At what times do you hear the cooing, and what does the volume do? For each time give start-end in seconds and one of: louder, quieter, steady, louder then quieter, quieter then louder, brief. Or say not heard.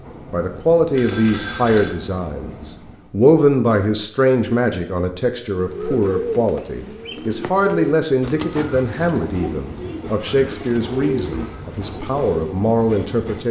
5.5-12.6 quieter then louder.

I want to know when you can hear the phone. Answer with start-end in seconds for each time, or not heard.
0.9-2.0.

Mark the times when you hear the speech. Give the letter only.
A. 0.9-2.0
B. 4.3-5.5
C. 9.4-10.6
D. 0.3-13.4
D.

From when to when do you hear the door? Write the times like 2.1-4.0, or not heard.
not heard.